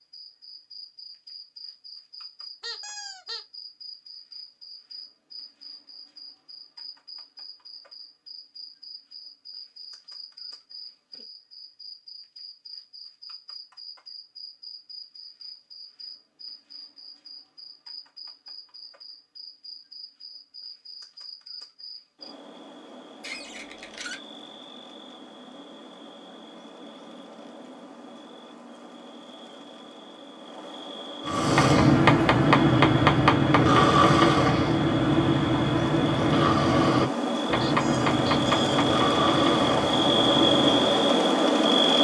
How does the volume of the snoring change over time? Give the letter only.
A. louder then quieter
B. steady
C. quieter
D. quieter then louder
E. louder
C.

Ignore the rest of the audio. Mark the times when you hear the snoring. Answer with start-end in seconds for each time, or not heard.
31.2-41.2.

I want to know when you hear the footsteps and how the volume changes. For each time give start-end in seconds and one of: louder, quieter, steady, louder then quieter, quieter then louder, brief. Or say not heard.
not heard.